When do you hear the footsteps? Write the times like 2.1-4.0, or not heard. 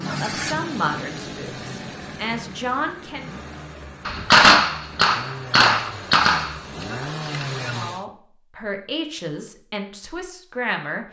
not heard.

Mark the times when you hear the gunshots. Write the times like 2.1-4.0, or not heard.
4.0-7.8.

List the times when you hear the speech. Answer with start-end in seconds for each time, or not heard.
0.0-3.4, 7.7-11.0.